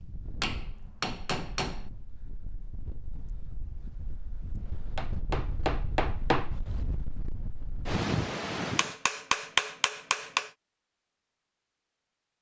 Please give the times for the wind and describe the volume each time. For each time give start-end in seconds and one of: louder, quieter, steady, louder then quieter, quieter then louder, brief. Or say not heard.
0.0-8.9 louder.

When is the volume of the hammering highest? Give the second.
9 s.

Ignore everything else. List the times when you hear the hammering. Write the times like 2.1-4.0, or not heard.
0.4-1.9, 5.0-6.5, 8.8-10.4.